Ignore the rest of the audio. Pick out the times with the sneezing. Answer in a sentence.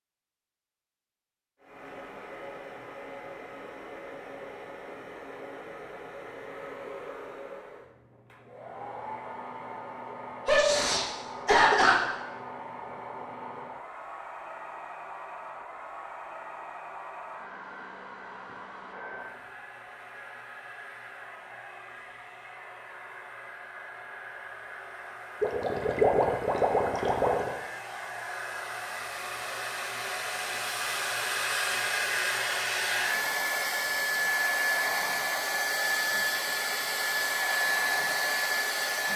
You can hear the sneezing from 10.4 to 12.0 s.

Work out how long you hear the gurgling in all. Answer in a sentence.
You can hear the gurgling for 2 seconds altogether.